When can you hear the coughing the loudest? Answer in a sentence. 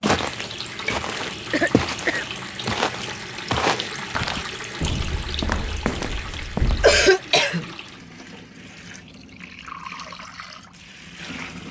The volume of the coughing peaks at 7 seconds.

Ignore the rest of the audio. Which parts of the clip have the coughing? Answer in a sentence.
You can hear the coughing from 1.1 to 2.4 s and from 6.8 to 7.7 s.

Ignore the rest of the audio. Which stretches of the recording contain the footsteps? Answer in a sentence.
You can hear the footsteps from 0.0 to 7.1 s.